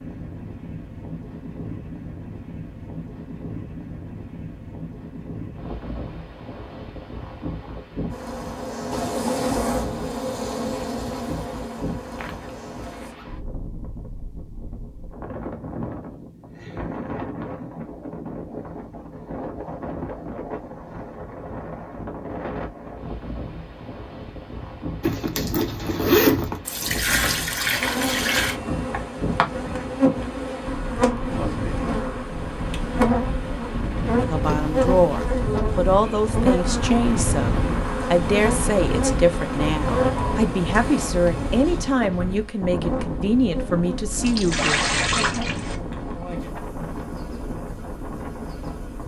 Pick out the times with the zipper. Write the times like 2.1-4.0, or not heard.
12.2-13.2, 25.0-26.6, 34.4-35.4.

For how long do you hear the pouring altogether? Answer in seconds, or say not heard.
4 s.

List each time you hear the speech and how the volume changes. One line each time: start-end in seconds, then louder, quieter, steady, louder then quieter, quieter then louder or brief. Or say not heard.
34.2-44.8 steady.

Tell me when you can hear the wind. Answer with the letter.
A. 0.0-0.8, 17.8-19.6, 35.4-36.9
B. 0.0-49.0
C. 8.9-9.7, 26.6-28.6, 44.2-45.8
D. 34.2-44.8
B.